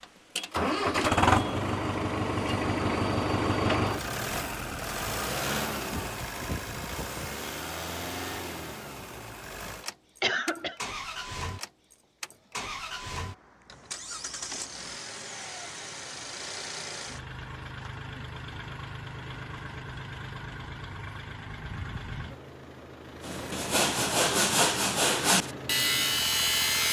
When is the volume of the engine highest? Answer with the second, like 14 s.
1 s.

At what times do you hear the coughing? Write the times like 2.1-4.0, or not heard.
10.2-10.8.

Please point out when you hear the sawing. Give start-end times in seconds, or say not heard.
23.2-26.8.